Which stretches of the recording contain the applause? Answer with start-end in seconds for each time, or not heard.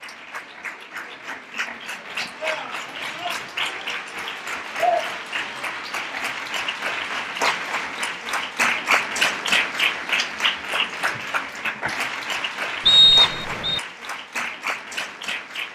0.0-15.7.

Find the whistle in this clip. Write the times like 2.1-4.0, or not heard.
12.8-13.8.